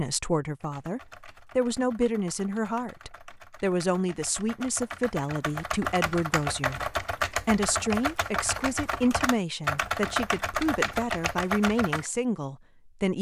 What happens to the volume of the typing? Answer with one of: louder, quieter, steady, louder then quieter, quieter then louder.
louder.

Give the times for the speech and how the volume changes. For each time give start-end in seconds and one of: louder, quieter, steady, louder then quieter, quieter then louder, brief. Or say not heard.
0.0-13.1 steady.